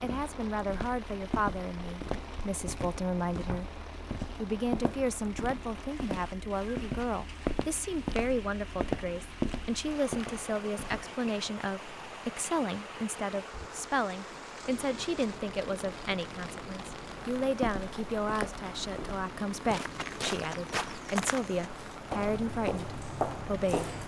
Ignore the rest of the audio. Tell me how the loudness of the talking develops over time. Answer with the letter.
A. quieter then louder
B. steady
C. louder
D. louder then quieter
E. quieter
B.